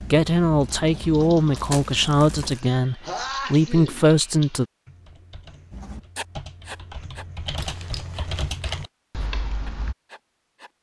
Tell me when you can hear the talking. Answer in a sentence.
You can hear the talking from 0.0 to 4.7 s.